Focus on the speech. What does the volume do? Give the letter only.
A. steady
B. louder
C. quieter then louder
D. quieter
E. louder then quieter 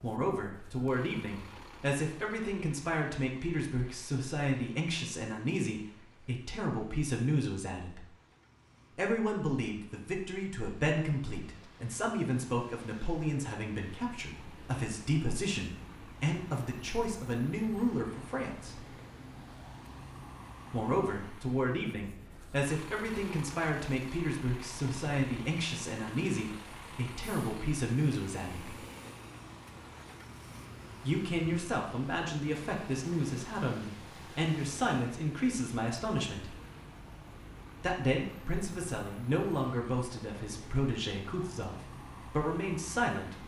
A.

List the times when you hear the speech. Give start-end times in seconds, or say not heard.
0.0-8.1, 8.9-18.9, 20.7-28.8, 31.0-36.5, 37.8-43.4.